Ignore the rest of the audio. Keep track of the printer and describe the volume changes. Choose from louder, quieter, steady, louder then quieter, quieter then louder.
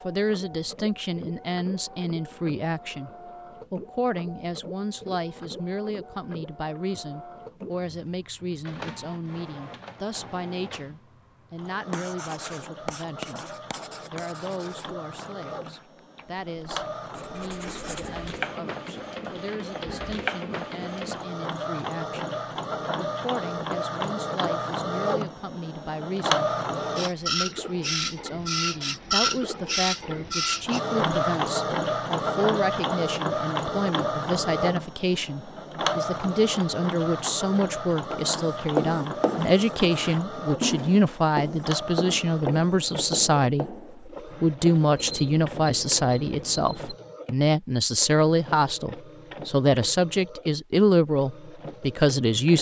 louder then quieter.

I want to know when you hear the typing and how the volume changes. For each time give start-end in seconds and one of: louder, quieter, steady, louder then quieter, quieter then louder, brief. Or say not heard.
not heard.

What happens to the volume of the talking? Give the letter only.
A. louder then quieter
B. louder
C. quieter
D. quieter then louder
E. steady
D.